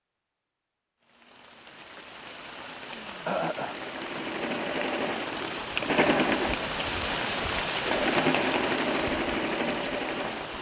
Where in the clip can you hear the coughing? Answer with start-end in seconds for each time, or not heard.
3.2-4.2.